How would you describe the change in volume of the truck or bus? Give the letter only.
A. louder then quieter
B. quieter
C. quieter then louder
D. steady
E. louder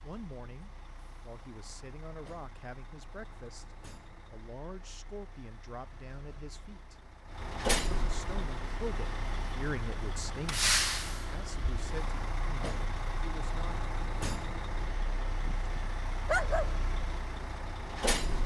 A.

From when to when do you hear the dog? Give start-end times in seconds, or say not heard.
15.3-16.7.